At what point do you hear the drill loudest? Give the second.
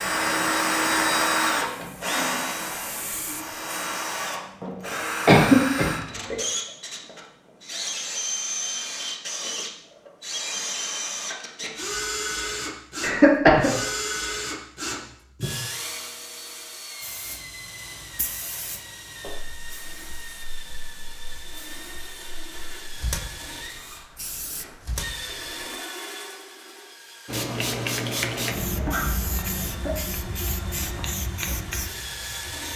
1 s.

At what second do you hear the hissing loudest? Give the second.
28 s.